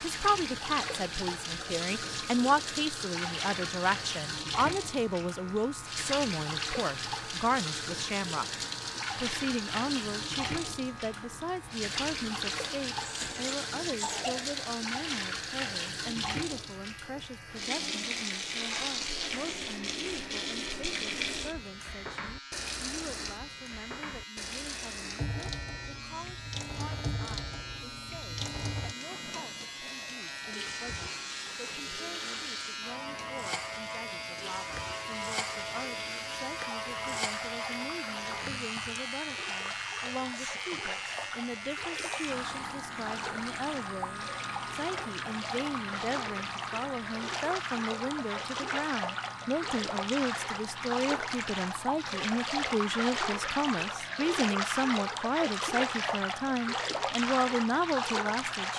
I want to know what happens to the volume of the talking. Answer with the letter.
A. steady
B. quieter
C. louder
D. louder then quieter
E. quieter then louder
E.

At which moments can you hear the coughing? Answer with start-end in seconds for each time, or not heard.
13.0-14.5.